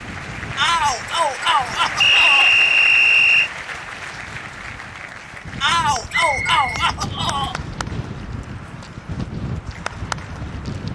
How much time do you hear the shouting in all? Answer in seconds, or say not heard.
4 s.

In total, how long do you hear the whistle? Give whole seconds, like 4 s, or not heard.
3 s.